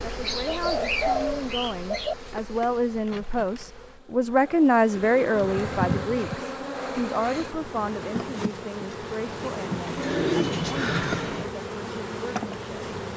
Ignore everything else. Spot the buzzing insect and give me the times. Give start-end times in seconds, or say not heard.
0.0-13.1.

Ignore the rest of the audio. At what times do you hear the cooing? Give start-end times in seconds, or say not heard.
0.2-2.1, 5.0-6.4, 9.8-11.5.